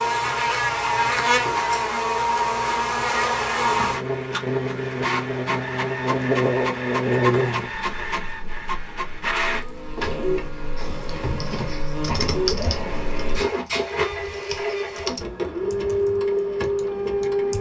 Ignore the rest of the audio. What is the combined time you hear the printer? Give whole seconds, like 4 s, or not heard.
14 s.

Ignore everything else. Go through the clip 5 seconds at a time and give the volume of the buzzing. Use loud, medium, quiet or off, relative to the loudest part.
loud, loud, quiet, off.